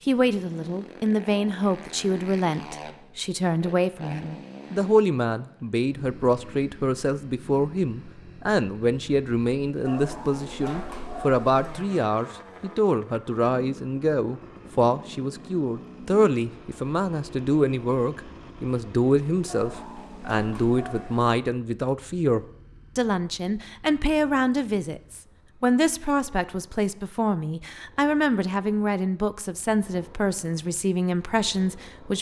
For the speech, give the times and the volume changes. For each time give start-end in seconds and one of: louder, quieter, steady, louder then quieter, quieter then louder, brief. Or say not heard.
0.1-32.1 steady.